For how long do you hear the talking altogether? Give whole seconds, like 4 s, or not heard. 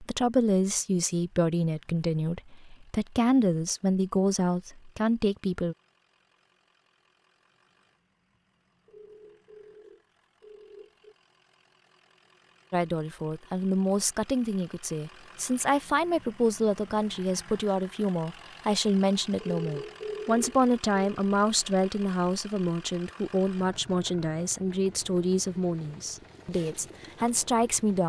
21 s.